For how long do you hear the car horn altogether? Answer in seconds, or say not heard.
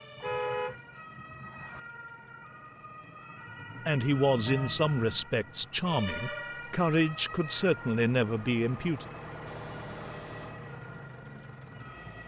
3 s.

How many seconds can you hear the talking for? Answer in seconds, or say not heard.
5 s.